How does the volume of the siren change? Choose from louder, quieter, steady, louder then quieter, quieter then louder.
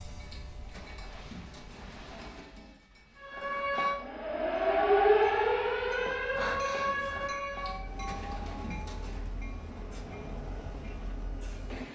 louder then quieter.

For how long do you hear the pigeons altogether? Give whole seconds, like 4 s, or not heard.
4 s.